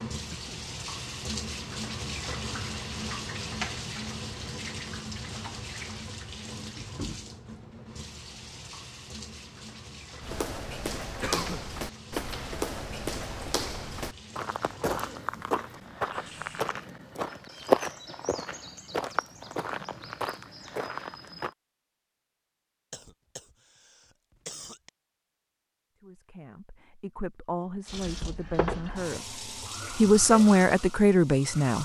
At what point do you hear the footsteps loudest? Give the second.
18 s.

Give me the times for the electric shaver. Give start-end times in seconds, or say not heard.
not heard.